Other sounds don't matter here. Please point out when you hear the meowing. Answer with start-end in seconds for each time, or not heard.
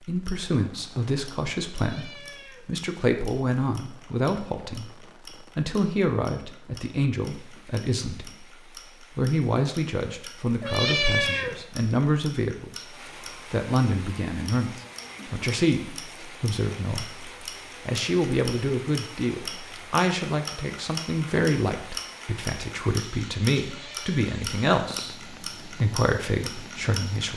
1.7-2.8, 10.6-11.7, 23.6-24.2.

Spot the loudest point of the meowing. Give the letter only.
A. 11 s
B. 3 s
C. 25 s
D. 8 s
A.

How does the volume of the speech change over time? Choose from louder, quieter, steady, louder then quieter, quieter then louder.
steady.